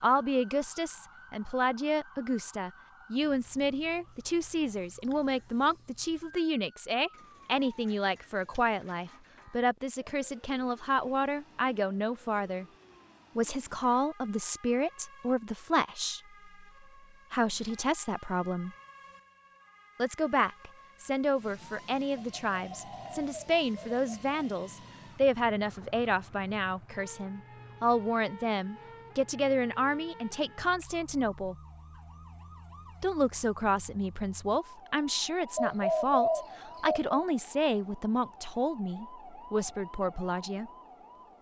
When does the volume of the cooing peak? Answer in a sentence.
The loudest moment of the cooing is at 36 seconds.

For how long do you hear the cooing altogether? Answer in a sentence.
You can hear the cooing for 6 seconds altogether.